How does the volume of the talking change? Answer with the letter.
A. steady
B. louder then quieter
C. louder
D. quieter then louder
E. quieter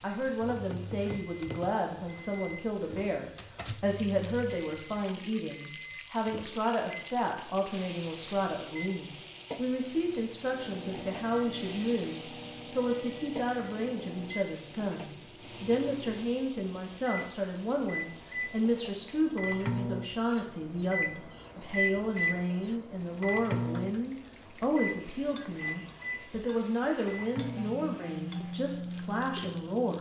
A.